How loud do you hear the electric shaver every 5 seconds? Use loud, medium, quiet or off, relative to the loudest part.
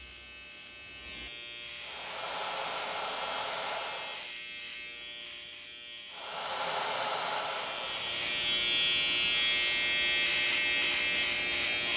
quiet, loud, loud.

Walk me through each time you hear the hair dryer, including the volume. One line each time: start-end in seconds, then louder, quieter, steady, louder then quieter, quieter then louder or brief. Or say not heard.
1.8-4.3 brief
6.1-11.9 quieter.